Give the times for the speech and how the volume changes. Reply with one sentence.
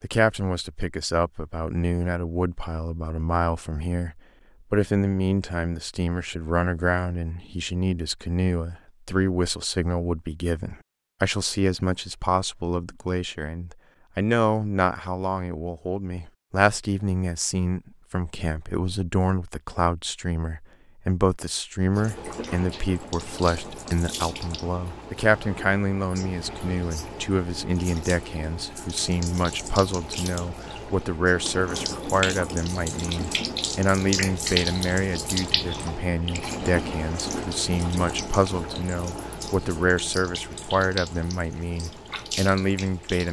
The speech can be heard from 0.0 to 43.2 s, at a steady volume.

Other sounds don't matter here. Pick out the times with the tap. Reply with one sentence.
The tap can be heard from 21.9 to 43.2 s.